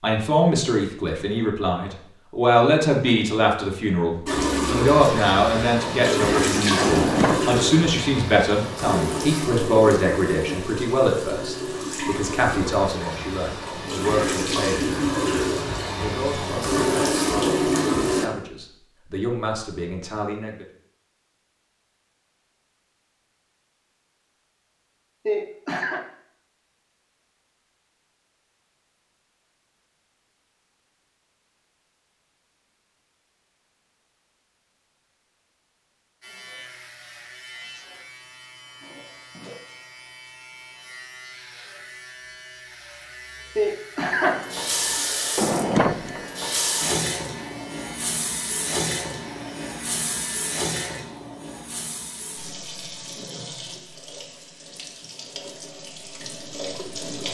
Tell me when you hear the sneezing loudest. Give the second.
44 s.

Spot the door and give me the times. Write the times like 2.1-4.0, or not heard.
6.8-7.5, 45.4-46.2.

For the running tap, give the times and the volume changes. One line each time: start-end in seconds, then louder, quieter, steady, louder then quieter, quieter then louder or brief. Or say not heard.
4.2-18.3 quieter then louder
44.2-57.2 quieter.